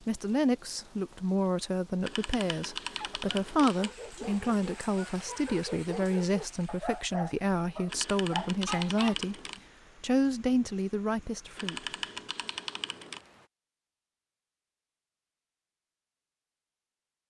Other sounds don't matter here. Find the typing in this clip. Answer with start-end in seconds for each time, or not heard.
2.0-4.0, 7.8-9.6, 11.6-13.2.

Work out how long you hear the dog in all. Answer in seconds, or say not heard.
6 s.